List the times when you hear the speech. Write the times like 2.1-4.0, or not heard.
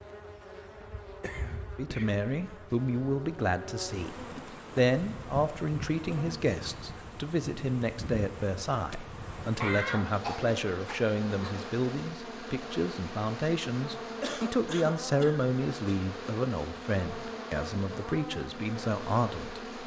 1.8-4.2, 4.8-19.6.